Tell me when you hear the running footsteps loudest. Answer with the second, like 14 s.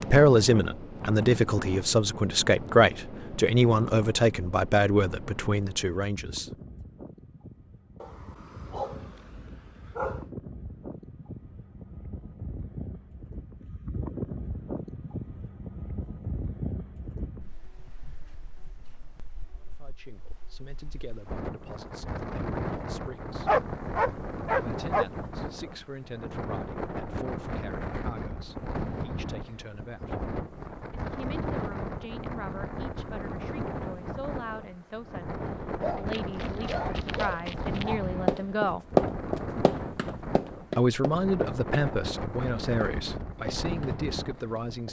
39 s.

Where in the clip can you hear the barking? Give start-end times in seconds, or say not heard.
8.0-10.2, 23.4-25.1, 35.8-38.1.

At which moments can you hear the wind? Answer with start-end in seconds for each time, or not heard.
0.0-44.8.